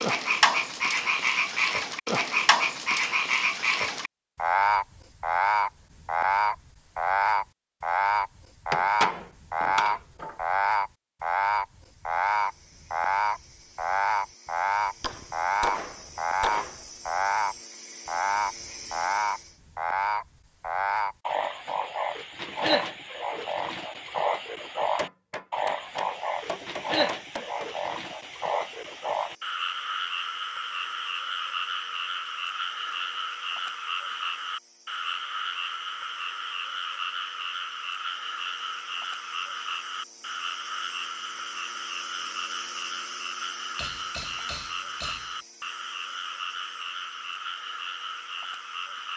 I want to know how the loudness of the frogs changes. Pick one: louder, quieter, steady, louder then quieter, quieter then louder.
quieter.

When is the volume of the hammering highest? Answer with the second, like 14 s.
9 s.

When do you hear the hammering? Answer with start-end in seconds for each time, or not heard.
8.7-10.3, 15.0-16.8, 24.9-27.7, 43.8-45.4.